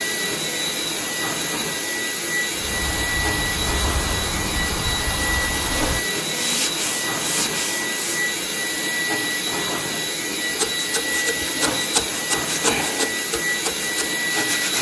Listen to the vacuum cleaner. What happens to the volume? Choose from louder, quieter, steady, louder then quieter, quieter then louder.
steady.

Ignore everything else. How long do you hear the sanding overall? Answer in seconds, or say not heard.
10 s.